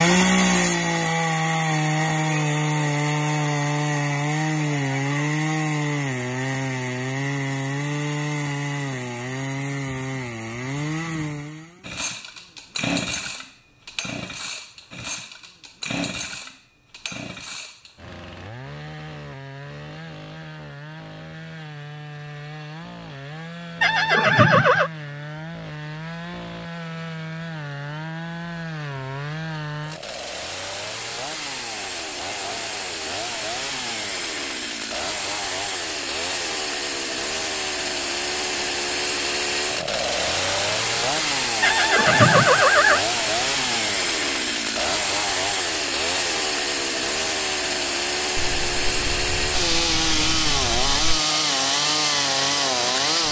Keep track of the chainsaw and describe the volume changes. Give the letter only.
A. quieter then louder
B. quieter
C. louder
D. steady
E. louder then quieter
A.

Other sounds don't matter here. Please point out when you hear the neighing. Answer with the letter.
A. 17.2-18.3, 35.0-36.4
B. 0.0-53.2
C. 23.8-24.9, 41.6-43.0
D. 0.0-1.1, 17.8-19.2
C.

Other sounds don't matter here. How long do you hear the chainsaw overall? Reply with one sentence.
You can hear the chainsaw for 53 seconds altogether.